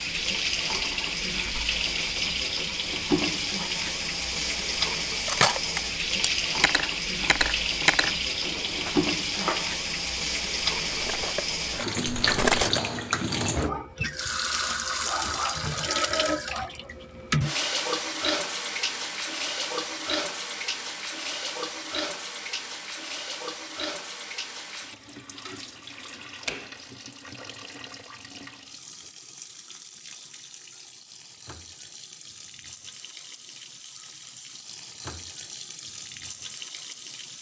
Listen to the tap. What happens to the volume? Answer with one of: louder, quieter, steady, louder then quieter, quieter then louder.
quieter.